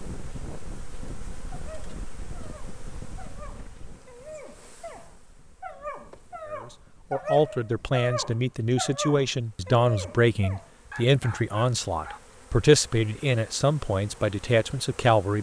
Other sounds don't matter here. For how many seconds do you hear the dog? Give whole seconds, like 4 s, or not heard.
11 s.